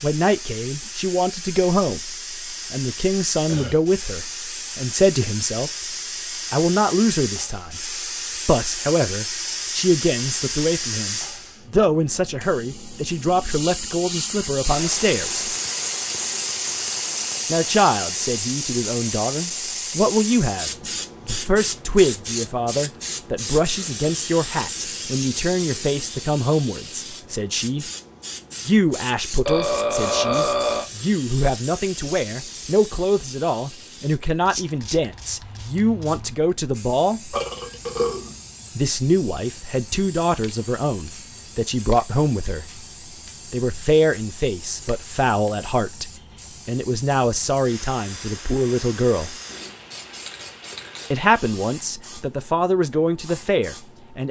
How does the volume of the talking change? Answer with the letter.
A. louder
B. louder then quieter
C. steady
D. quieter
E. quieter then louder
C.